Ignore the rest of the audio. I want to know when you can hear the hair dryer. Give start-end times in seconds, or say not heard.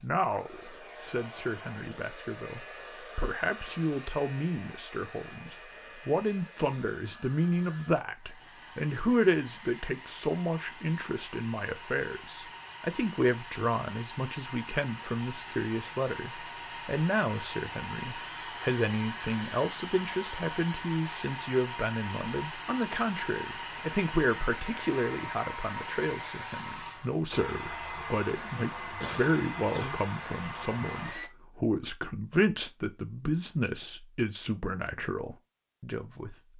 0.0-31.3.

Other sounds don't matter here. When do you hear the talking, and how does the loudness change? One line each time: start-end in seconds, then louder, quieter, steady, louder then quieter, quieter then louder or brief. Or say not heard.
0.0-36.4 steady.